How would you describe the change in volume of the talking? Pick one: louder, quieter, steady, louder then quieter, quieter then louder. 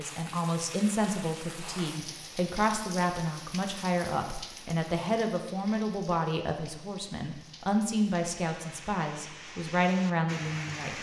steady.